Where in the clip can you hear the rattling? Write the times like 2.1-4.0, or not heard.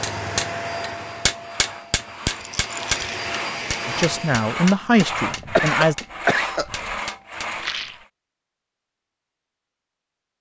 2.4-3.2, 7.5-8.1.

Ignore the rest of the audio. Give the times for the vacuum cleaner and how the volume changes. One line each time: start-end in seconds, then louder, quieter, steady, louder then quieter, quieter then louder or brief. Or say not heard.
0.0-4.5 quieter then louder.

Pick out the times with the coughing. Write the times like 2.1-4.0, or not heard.
5.5-6.9.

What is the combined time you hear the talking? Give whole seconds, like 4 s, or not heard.
2 s.